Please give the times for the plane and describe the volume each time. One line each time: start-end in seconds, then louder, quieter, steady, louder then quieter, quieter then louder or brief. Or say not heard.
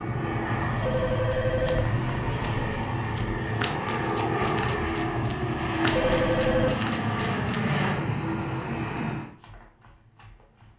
0.0-9.3 steady.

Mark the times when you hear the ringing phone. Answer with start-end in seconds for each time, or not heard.
0.8-2.9, 5.9-6.8.